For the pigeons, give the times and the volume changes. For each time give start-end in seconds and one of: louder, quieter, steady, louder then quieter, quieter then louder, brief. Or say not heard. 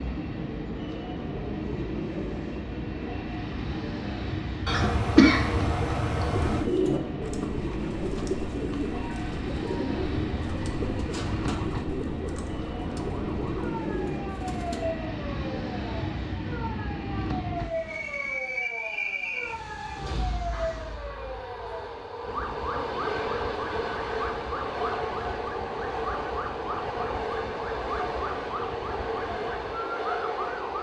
6.3-14.8 quieter.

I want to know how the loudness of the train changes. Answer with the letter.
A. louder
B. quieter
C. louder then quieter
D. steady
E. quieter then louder
D.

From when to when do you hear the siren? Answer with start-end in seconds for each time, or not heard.
8.9-30.7.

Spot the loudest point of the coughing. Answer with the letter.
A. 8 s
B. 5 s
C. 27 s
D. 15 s
B.